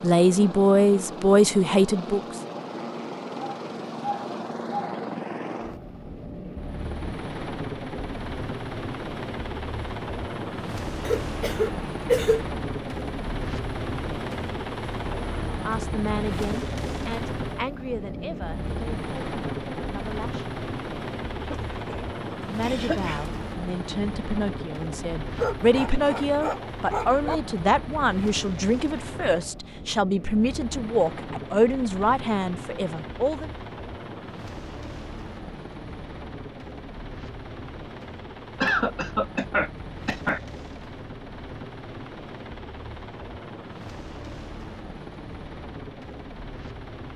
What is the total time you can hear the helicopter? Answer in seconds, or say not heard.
47 s.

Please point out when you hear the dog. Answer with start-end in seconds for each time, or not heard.
3.4-5.0, 25.4-27.4.